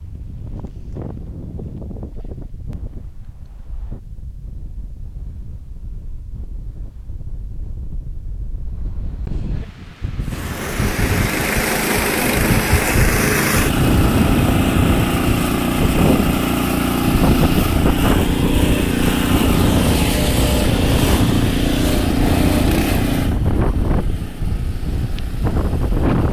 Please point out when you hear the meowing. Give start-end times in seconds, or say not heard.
not heard.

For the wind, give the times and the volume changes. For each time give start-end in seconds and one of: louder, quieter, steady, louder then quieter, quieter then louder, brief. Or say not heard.
0.0-26.2 louder.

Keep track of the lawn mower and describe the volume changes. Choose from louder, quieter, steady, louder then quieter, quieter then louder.
quieter.